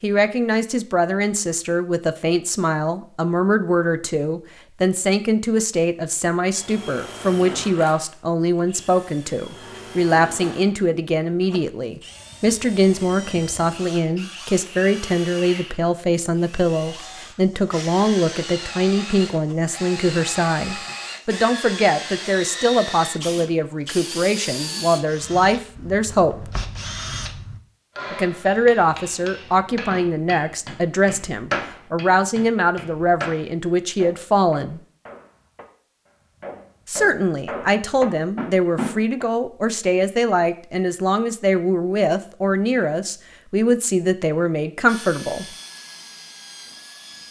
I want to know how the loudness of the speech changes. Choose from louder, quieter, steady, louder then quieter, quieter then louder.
steady.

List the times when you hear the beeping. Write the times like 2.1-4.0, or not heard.
not heard.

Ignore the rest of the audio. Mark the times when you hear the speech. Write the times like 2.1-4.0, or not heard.
0.0-26.5, 28.1-34.8, 36.9-45.5.